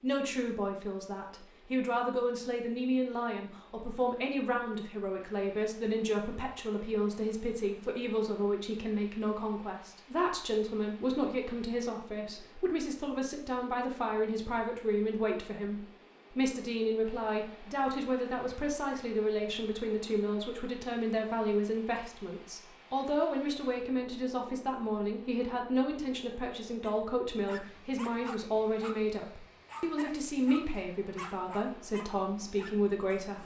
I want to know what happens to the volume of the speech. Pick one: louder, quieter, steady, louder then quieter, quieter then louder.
steady.